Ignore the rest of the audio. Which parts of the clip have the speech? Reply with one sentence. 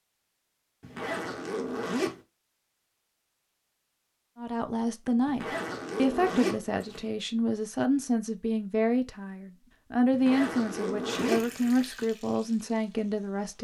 You can hear the speech from 4.3 to 13.5 s.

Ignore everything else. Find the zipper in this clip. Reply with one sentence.
The zipper can be heard from 0.8 to 2.2 s, from 5.2 to 7.0 s and from 10.1 to 11.8 s.